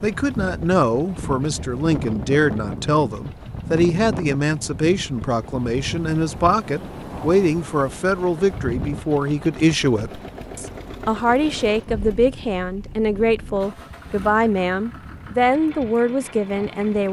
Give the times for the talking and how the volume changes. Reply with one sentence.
The talking can be heard from 0.0 to 17.0 s, at a steady volume.